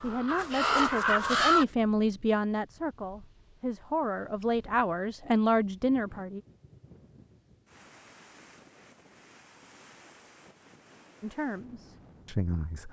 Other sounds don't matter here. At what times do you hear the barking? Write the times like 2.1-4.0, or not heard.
not heard.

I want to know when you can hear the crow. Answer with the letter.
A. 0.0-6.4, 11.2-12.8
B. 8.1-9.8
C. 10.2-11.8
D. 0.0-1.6
D.